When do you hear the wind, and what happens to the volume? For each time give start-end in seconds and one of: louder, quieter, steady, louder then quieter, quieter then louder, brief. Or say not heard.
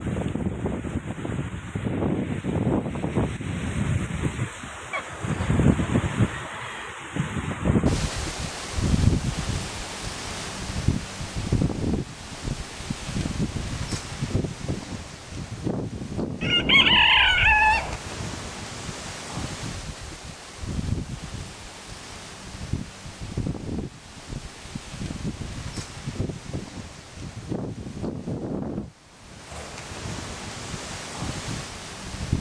0.0-32.3 quieter.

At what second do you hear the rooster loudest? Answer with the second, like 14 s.
17 s.